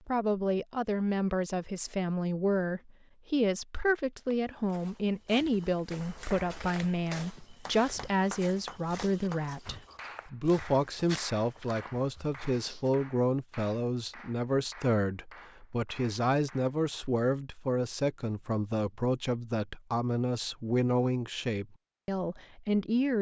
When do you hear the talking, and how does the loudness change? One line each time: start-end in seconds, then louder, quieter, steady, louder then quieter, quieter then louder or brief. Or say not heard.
0.1-23.1 steady.